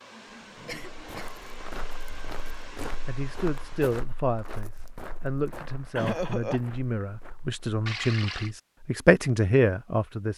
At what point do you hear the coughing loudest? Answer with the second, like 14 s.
6 s.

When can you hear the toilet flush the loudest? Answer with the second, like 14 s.
8 s.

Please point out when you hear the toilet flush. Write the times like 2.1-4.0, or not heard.
0.3-1.3, 7.8-8.5.